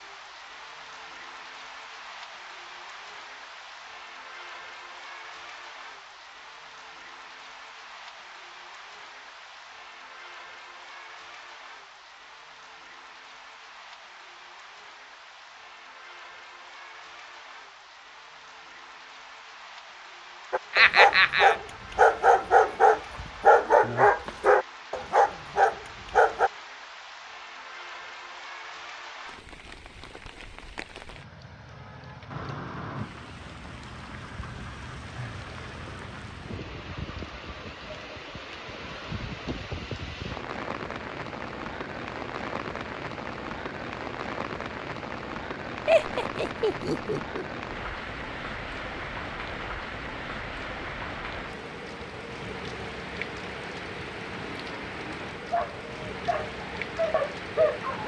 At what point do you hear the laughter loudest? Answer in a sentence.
The loudest moment of the laughter is at 21 seconds.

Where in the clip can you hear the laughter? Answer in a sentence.
The laughter can be heard from 20.7 to 21.6 s and from 45.9 to 47.5 s.